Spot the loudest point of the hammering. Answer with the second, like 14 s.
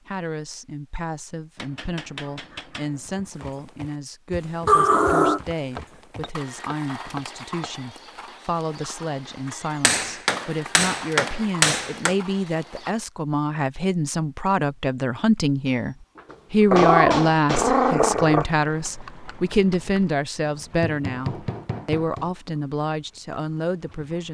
12 s.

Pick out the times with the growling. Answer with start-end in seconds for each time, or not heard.
4.7-5.4, 16.7-18.4.